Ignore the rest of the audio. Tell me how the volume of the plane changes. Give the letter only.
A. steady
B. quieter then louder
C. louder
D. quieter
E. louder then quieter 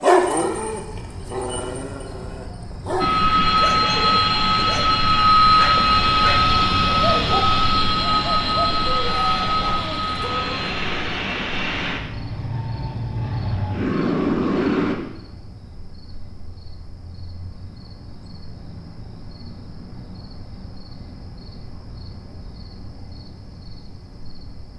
D.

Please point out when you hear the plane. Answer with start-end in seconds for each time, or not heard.
3.0-14.9.